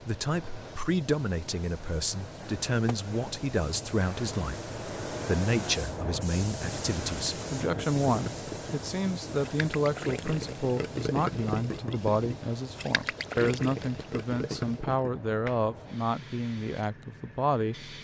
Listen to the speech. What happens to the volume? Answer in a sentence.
The loudness of the speech stays about the same.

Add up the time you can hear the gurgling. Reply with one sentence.
You can hear the gurgling for 8 seconds altogether.